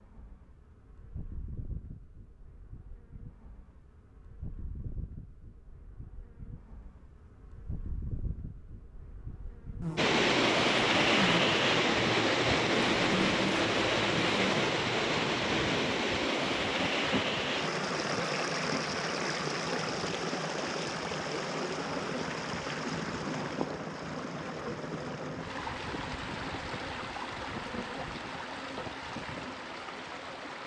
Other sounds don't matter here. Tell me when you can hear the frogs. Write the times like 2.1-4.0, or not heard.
not heard.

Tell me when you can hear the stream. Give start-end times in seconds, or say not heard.
9.9-30.6.